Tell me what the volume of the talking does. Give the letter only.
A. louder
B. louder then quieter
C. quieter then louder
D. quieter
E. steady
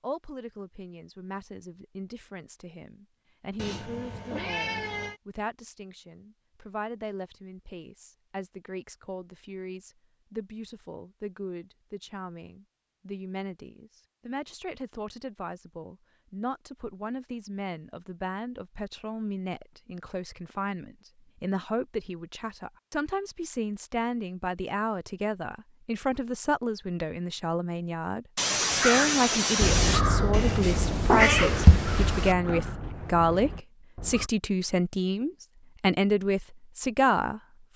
A.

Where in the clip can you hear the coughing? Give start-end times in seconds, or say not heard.
28.4-30.1.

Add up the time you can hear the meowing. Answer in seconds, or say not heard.
4 s.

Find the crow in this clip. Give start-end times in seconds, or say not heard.
28.7-34.3.